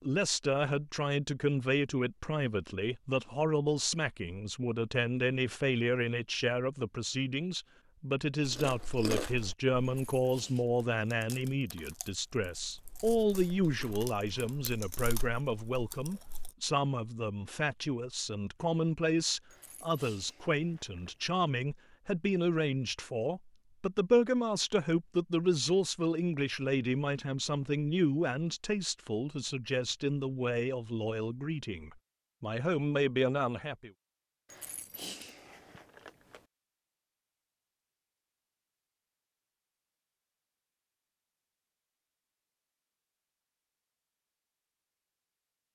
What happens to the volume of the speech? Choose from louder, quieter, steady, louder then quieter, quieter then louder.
steady.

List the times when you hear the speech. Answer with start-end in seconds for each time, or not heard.
0.0-33.9.